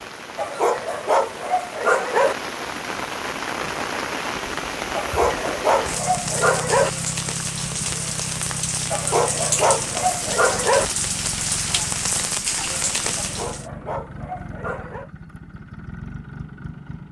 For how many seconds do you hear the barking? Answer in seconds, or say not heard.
8 s.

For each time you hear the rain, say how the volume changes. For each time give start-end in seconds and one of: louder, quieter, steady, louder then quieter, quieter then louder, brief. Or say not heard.
0.0-13.7 louder.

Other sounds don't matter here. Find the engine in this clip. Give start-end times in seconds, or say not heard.
5.8-17.0.